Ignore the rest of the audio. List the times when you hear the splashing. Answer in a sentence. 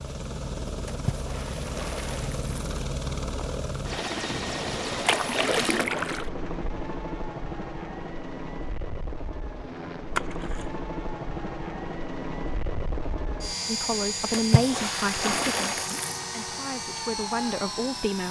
You can hear the splashing from 0.8 to 2.6 s, from 5.0 to 6.3 s, from 10.2 to 10.8 s and from 14.3 to 16.2 s.